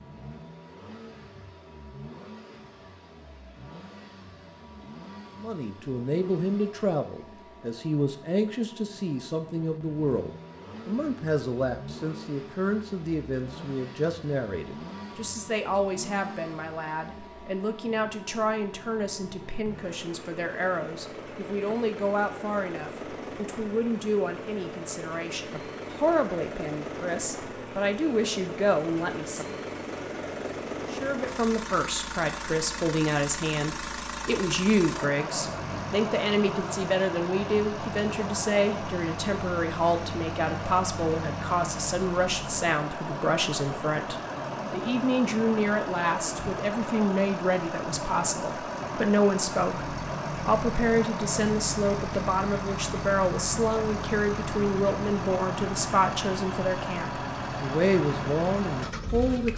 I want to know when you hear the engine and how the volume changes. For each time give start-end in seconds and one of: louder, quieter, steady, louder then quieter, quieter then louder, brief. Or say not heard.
0.0-59.5 louder.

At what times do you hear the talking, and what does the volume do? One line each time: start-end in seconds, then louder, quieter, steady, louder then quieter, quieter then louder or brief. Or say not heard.
5.3-29.6 steady
30.9-59.5 steady.